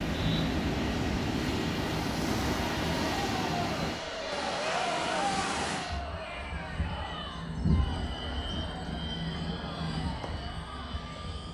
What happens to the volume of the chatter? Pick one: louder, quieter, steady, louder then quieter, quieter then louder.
quieter.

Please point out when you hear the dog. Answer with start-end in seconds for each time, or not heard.
not heard.